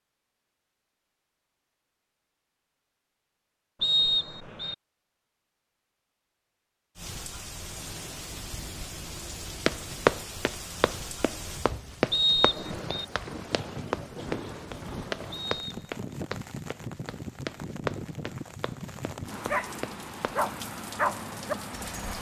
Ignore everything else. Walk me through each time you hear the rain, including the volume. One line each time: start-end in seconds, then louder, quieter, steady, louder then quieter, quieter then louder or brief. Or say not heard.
7.0-22.1 steady.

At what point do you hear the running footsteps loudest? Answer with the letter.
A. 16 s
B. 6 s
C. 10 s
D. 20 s
C.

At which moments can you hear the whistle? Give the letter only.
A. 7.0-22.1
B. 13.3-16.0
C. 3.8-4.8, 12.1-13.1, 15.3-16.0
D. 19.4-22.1
C.